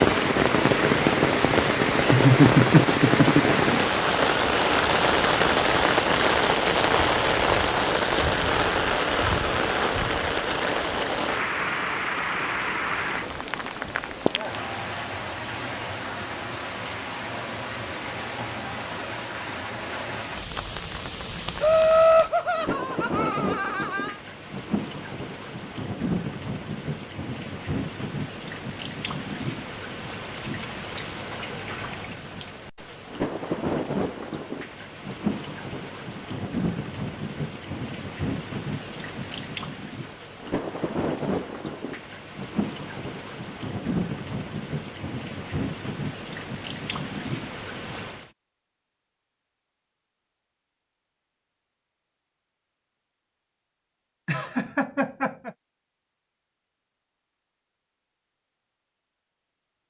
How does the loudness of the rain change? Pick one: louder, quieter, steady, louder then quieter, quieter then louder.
quieter.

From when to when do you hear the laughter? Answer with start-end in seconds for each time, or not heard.
2.0-3.5, 21.6-24.1, 54.2-55.5.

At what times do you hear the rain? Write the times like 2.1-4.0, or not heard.
0.0-48.3.